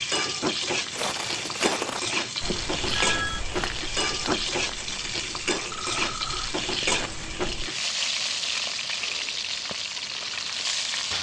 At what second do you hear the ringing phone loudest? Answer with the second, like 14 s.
3 s.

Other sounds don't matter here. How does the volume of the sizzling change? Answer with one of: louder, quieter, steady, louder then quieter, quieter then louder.
steady.